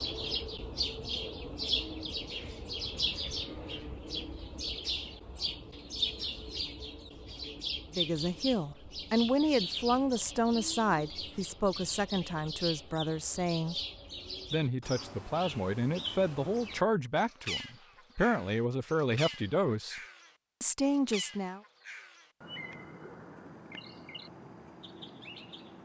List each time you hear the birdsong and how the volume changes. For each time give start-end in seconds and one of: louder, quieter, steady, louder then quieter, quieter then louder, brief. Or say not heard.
0.0-25.8 quieter.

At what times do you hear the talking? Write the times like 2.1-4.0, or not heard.
7.9-13.8, 14.5-20.0, 20.6-21.6.